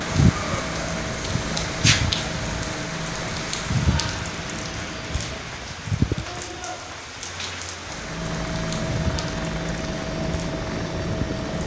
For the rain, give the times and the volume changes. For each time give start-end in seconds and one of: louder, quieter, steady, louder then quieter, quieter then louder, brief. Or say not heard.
0.0-11.6 quieter.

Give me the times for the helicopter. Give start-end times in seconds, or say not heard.
0.0-5.8, 7.8-11.6.